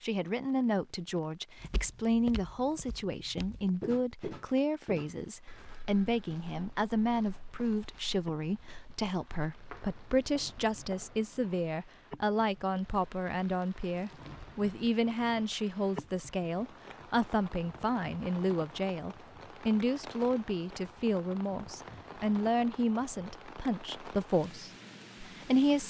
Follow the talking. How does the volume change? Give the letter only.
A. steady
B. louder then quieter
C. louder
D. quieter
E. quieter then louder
A.